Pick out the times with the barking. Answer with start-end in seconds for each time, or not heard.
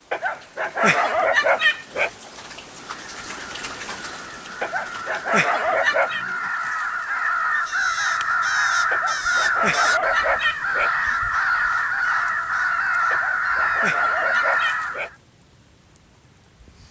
0.1-2.1, 4.6-6.2, 8.9-10.9, 13.1-15.1.